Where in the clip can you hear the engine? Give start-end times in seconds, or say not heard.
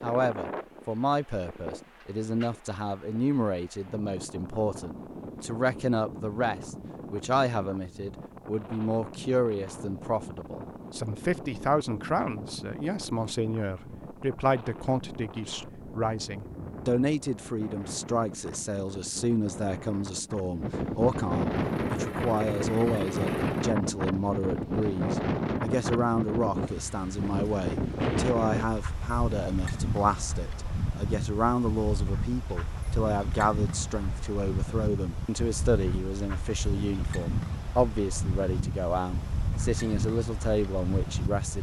21.6-23.8.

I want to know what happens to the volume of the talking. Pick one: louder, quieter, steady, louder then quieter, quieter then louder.
steady.